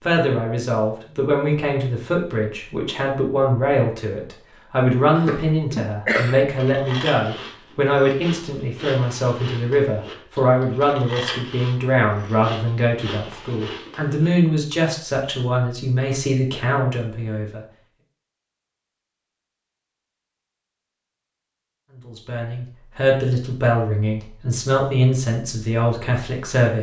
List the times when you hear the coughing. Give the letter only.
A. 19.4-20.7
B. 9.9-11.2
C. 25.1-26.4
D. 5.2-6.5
D.